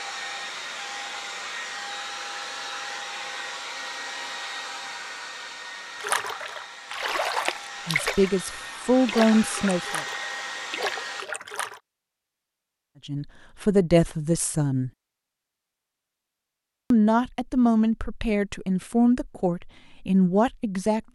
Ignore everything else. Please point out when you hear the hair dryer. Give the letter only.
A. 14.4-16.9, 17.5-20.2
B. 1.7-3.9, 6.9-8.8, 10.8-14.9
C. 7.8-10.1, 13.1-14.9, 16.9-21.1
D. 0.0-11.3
D.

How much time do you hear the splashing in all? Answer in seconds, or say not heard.
5 s.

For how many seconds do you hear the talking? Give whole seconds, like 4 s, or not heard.
8 s.